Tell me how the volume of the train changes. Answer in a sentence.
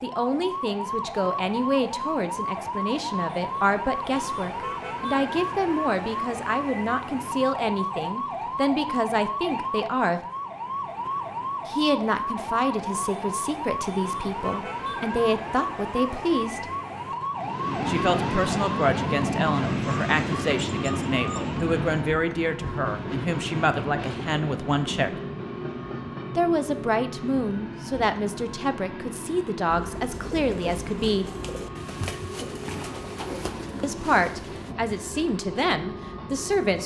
The loudness of the train goes down.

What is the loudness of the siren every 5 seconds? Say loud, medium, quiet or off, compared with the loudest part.
loud, loud, loud, loud, medium, medium, medium, medium.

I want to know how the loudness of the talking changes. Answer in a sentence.
The loudness of the talking stays about the same.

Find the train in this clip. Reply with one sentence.
You can hear the train from 17.3 to 36.8 s.